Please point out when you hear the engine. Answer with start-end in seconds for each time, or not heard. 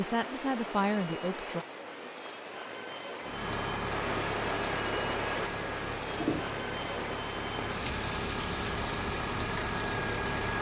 3.2-10.5.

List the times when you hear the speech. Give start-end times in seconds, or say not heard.
0.0-1.6.